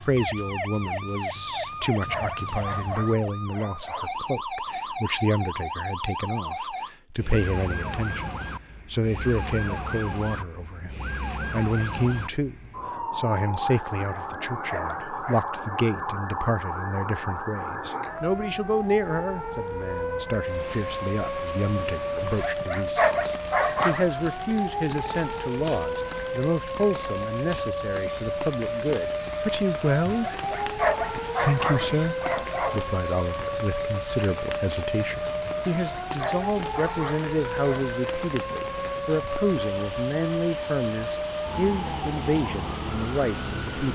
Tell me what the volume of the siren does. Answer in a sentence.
The loudness of the siren stays about the same.